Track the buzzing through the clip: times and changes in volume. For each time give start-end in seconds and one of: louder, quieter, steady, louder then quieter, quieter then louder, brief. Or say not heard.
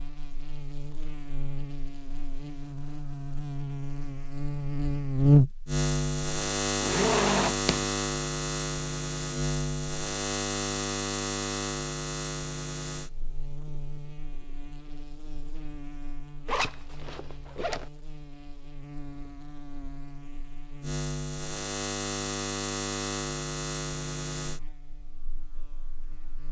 0.0-26.4 quieter then louder.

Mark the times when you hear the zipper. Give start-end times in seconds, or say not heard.
6.8-7.8, 16.4-17.9.